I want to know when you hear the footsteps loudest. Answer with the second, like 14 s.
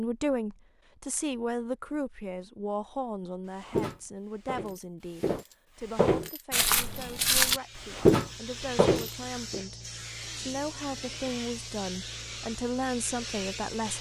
8 s.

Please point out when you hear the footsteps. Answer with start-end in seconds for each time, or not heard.
3.6-9.6.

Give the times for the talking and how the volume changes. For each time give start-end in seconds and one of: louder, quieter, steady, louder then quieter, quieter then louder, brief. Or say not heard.
0.0-13.9 quieter then louder.